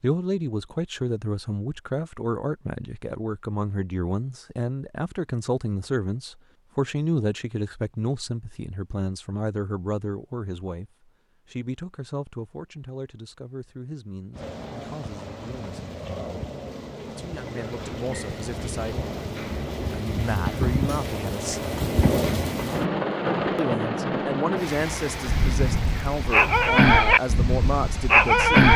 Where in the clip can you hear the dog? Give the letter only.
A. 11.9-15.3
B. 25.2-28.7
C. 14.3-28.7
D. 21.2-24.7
B.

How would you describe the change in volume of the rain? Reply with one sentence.
The volume of the rain goes up, then down.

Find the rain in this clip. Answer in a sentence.
The rain can be heard from 14.3 to 28.7 s.